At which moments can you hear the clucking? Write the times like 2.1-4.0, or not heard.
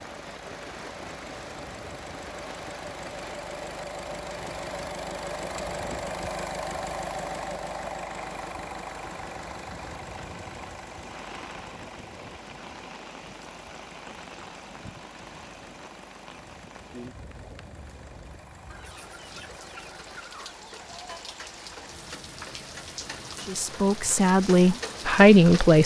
18.7-21.4.